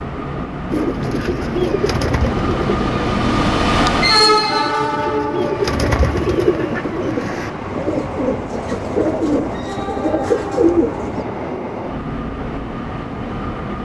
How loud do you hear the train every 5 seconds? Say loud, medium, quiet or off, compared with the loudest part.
loud, medium, medium.